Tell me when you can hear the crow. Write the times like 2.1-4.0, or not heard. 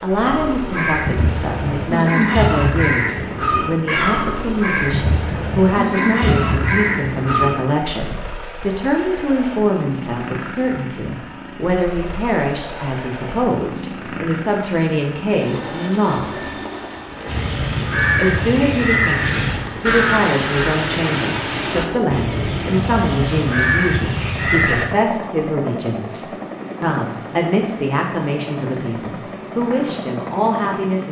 0.2-7.7, 17.2-24.9.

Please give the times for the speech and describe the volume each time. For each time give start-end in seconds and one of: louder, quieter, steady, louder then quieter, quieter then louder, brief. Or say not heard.
0.0-16.4 steady
18.1-31.0 steady.